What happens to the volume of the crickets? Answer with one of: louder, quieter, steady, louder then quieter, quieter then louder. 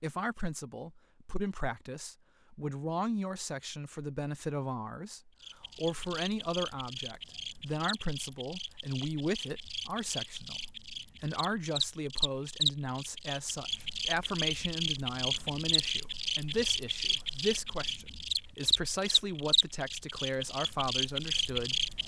louder.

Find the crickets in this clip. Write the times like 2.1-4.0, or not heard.
5.4-22.0.